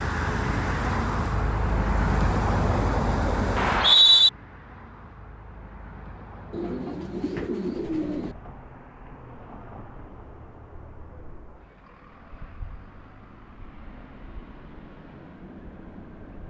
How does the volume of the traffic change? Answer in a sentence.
The loudness of the traffic goes down.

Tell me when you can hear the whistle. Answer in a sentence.
You can hear the whistle from 3.5 to 4.3 s.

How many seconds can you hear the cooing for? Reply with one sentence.
The cooing can be heard for 2 seconds in total.